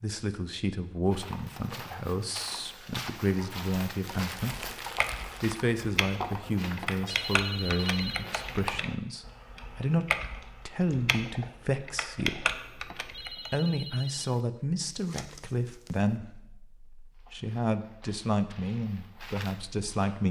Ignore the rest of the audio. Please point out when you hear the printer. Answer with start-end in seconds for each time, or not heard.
not heard.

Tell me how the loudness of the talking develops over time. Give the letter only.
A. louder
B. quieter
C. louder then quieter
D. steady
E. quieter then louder
D.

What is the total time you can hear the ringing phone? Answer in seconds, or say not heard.
4 s.